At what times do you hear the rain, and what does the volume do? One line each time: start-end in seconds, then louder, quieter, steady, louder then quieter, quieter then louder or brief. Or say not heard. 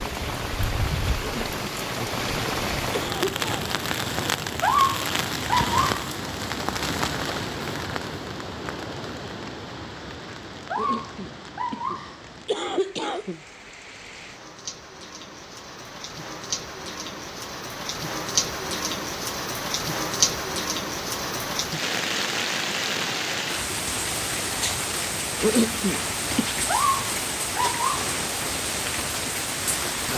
0.0-30.1 quieter then louder.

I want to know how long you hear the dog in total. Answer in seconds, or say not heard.
4 s.